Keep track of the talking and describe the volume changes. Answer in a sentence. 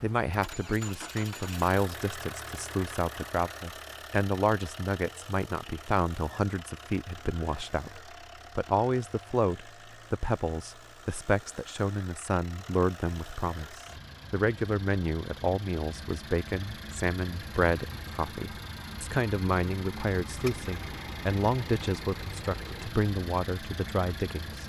The loudness of the talking stays about the same.